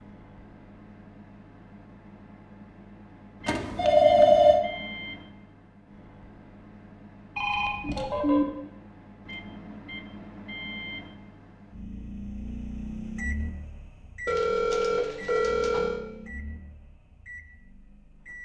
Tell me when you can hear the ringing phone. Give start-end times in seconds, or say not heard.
3.5-4.6, 7.3-8.4, 14.2-16.0.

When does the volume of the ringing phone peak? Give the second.
4 s.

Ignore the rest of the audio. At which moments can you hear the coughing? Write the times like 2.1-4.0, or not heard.
not heard.